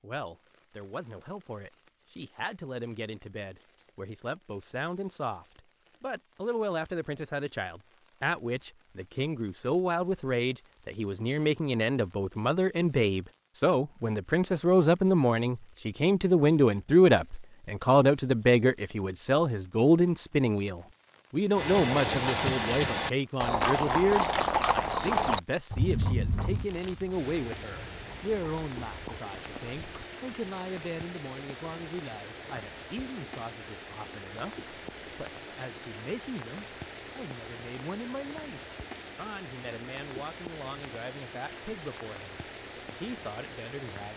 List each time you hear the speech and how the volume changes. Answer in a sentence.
You can hear the speech from 0.0 to 44.1 s, getting louder then quieter.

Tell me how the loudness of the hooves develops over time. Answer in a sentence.
The volume of the hooves goes down.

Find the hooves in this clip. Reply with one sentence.
You can hear the hooves from 21.5 to 30.1 s.